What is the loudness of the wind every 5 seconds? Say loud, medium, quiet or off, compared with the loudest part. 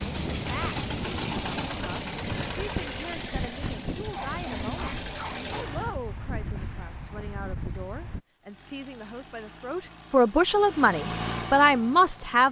loud, loud, off.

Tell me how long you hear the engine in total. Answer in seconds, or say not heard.
10 s.